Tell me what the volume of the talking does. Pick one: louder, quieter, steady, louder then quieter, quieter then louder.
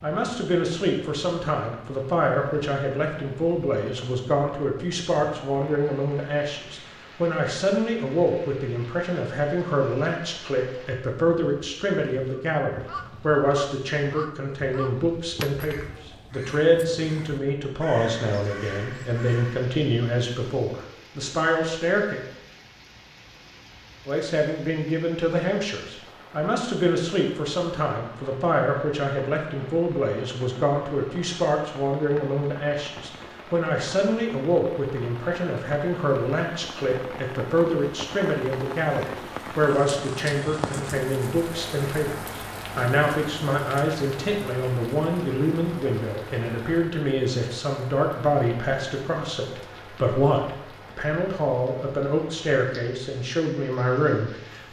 steady.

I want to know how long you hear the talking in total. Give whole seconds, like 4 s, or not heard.
53 s.